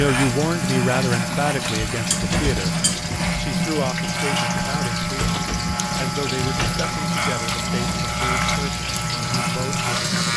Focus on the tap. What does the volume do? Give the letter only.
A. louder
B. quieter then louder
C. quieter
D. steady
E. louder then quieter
D.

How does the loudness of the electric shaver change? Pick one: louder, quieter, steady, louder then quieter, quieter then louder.
steady.